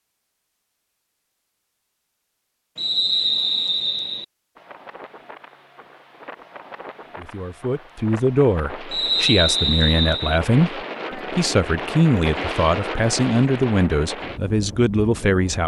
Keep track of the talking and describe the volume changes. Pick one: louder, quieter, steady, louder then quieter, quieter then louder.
steady.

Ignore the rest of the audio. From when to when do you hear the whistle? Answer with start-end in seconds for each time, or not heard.
2.8-4.2, 8.9-10.4.